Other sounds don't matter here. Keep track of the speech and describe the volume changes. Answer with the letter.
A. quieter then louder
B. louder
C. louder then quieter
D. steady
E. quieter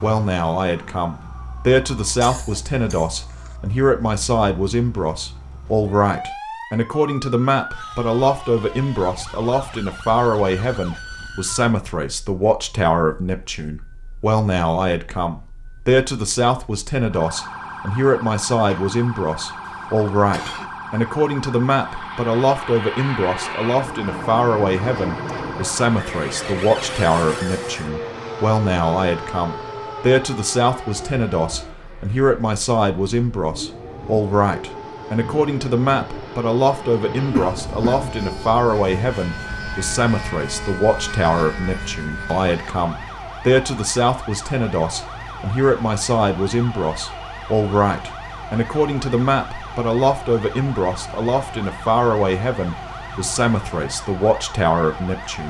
D.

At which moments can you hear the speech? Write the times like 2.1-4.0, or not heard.
0.0-55.4.